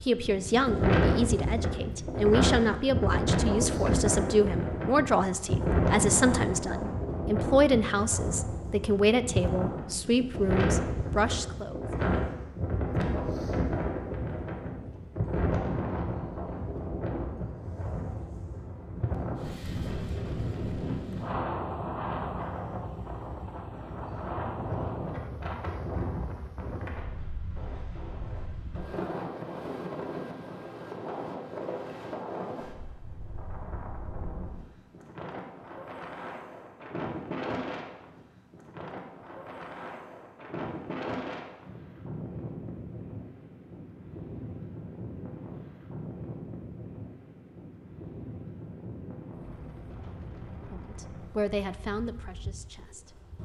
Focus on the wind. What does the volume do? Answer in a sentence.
The loudness of the wind goes down.